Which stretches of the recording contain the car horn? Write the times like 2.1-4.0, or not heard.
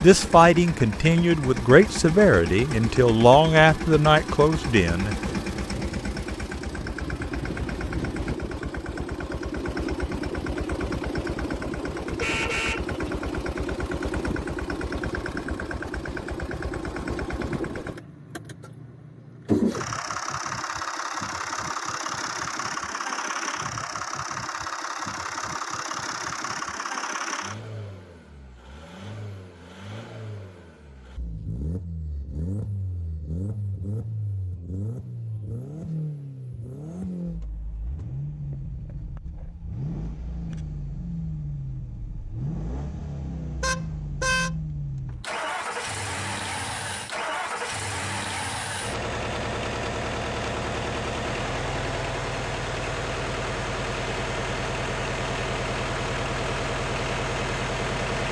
12.2-12.8, 43.6-44.5.